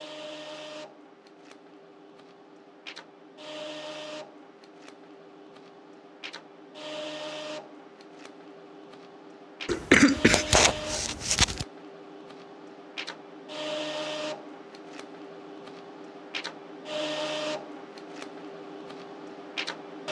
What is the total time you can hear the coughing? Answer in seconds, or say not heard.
2 s.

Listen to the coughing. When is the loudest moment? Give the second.
10 s.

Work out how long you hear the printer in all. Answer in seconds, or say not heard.
20 s.